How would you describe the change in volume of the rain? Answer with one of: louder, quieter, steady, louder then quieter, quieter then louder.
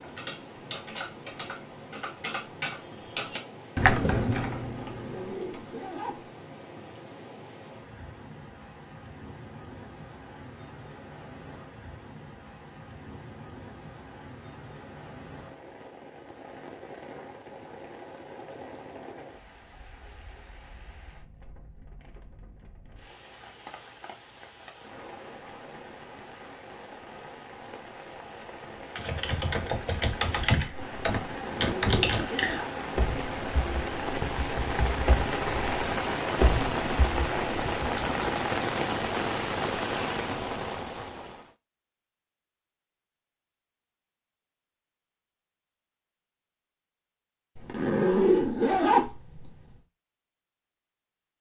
louder.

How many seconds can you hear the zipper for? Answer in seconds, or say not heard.
5 s.